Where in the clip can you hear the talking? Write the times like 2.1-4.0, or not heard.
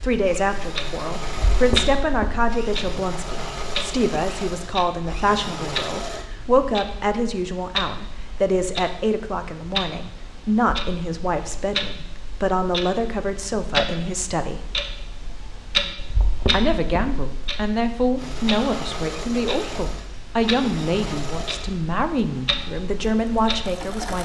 0.0-14.7, 16.5-24.2.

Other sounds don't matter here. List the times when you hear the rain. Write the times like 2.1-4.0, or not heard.
not heard.